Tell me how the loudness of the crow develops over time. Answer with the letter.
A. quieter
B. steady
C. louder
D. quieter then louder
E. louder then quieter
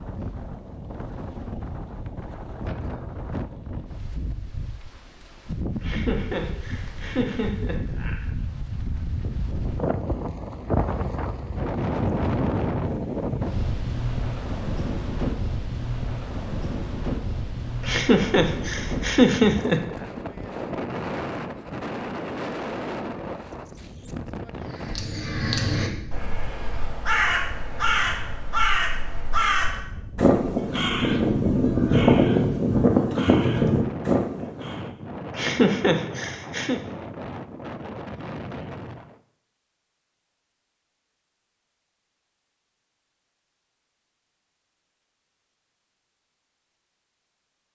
C.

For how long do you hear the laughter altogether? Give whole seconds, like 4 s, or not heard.
6 s.